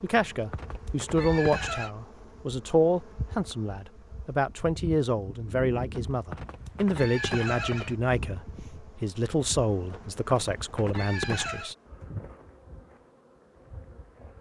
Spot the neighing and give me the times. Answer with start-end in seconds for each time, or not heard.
0.1-1.9, 6.0-8.0, 9.9-11.8.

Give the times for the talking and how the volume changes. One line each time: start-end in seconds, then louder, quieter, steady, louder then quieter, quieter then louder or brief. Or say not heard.
0.0-11.8 steady.